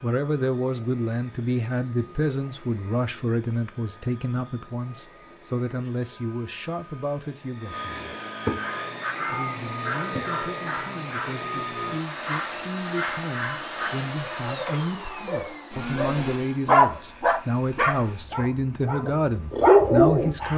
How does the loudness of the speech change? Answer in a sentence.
The volume of the speech goes down, then up.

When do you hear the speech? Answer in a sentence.
You can hear the speech from 0.0 to 7.9 s and from 9.2 to 20.5 s.